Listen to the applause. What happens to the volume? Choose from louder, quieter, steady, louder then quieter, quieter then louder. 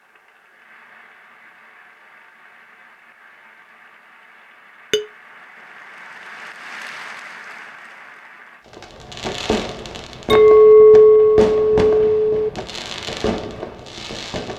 louder.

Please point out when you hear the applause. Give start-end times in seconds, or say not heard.
0.0-8.7.